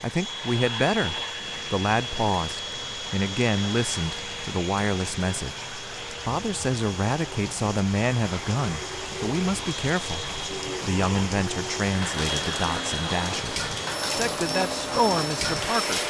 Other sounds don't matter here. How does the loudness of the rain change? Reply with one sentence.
The volume of the rain goes up.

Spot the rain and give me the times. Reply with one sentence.
You can hear the rain from 0.1 to 16.0 s.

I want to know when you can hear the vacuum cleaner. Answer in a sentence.
You can hear the vacuum cleaner from 0.0 to 15.9 s.